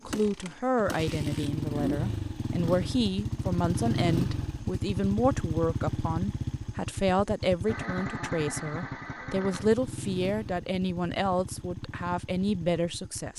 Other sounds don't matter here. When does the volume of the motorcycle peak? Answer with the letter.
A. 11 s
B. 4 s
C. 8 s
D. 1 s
B.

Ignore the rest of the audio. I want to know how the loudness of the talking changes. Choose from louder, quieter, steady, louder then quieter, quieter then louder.
steady.